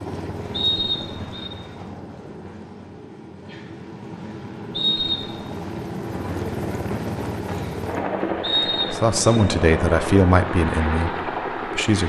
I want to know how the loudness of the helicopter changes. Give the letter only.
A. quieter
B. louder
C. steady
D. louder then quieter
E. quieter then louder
B.